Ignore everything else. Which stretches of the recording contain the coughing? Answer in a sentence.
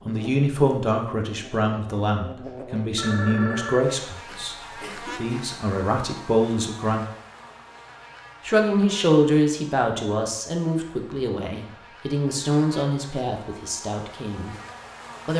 You can hear the coughing from 4.2 to 5.3 s.